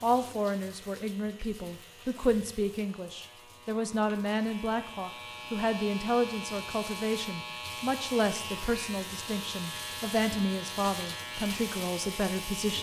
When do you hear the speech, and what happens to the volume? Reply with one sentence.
The speech can be heard from 0.0 to 12.7 s, at a steady volume.